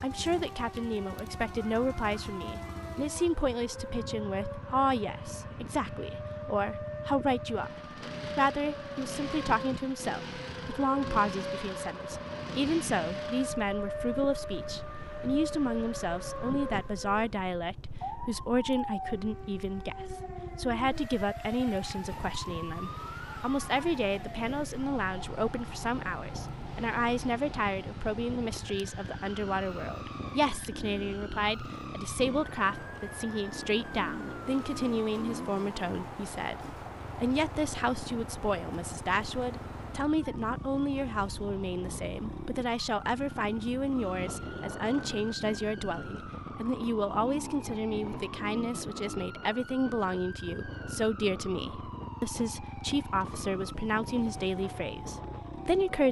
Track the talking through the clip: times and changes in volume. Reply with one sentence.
You can hear the talking from 0.0 to 7.8 s, at a steady volume; and from 8.3 to 56.0 s, at a steady volume.